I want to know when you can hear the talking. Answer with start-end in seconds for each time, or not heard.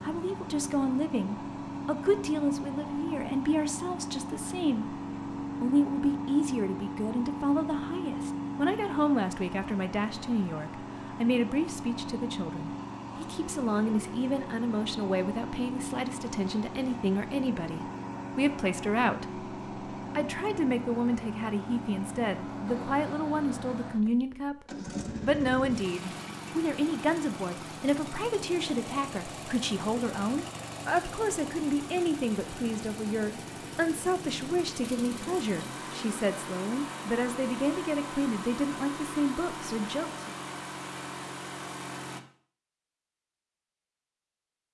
0.0-5.0, 5.6-24.6, 25.2-40.3.